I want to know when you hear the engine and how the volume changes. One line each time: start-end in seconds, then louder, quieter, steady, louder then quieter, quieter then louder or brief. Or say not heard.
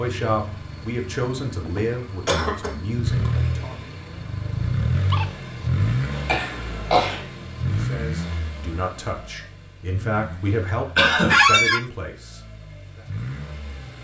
0.0-13.9 louder then quieter.